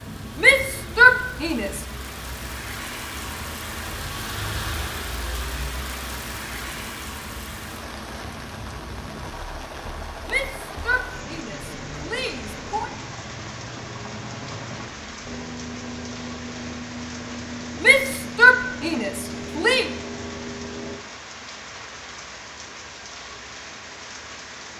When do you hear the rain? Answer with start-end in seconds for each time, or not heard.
0.0-24.7.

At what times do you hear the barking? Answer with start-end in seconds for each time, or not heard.
not heard.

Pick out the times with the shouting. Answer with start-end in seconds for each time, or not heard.
0.4-1.8, 10.2-12.9, 17.8-19.9.